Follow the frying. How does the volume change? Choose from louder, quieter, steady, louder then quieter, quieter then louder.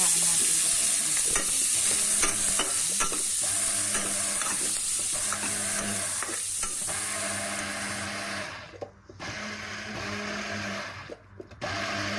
quieter.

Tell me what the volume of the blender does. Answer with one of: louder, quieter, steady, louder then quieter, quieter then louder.
louder.